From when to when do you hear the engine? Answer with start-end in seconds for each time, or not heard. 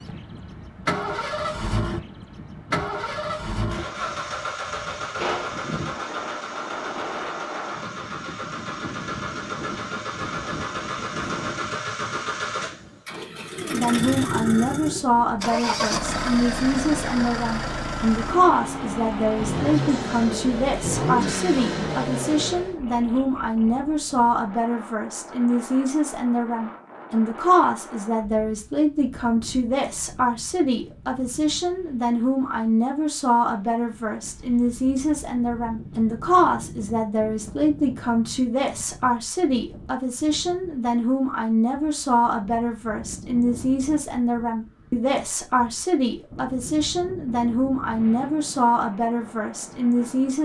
0.0-22.8.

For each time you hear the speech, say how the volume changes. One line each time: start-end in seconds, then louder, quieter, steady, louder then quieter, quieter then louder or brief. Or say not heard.
13.6-50.3 steady.